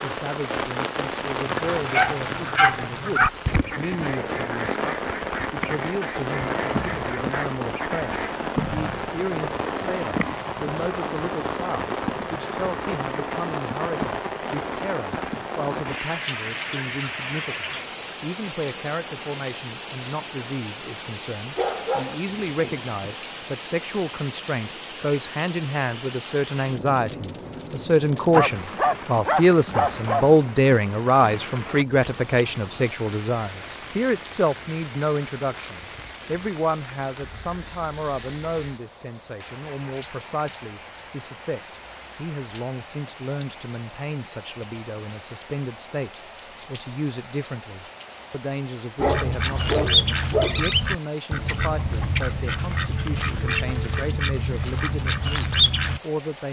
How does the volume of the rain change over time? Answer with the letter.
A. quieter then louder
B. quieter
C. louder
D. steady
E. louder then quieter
B.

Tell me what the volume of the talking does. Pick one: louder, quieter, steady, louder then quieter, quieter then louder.
louder then quieter.